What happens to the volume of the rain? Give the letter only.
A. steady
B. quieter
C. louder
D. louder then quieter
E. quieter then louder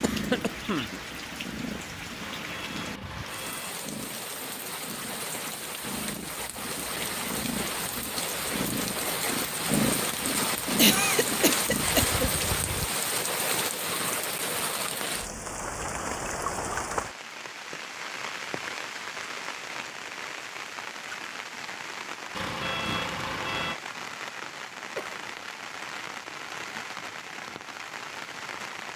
D.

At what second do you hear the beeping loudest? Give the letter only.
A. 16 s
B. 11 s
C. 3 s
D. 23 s
D.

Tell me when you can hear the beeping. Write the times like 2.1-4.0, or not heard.
2.2-3.9, 22.3-23.8.